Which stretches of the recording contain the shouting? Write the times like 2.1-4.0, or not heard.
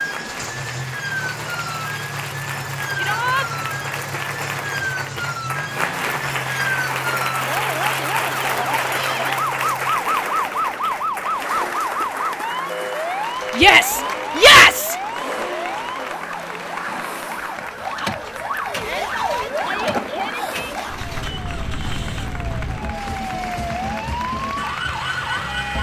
3.0-3.5, 13.6-14.9, 18.8-20.8.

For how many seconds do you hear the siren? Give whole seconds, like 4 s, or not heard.
26 s.